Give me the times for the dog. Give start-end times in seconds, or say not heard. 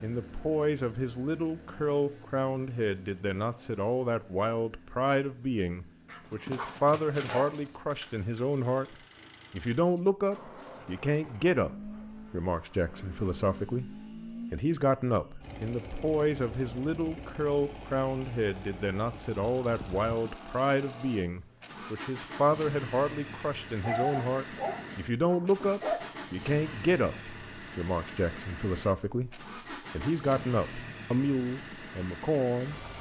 6.0-7.8, 23.8-26.1.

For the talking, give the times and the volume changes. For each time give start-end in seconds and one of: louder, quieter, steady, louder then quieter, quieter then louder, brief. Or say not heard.
0.0-32.9 steady.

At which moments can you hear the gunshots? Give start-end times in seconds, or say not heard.
not heard.